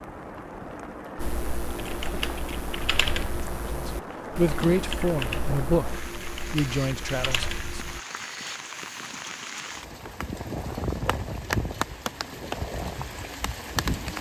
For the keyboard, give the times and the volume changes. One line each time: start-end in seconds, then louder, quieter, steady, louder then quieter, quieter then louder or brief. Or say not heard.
1.1-8.0 steady.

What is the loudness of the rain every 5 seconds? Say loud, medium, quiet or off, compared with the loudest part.
medium, medium, loud.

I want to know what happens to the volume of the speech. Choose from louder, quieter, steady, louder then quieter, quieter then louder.
quieter.